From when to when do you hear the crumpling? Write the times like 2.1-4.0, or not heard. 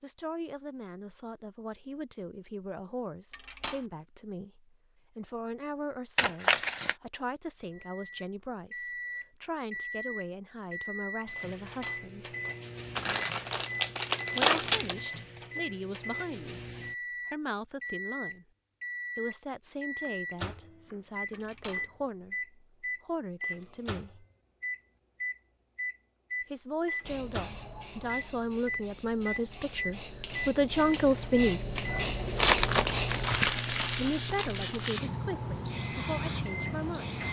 6.2-7.0, 12.9-14.9, 32.4-35.0.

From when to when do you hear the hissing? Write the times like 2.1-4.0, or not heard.
27.0-37.2.